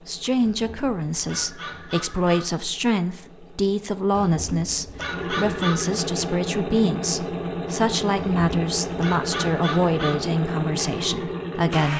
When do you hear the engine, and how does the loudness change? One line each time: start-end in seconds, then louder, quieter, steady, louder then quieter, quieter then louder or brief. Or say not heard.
0.0-11.9 louder.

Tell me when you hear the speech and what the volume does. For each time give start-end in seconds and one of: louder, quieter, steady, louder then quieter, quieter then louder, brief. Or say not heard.
0.1-11.9 steady.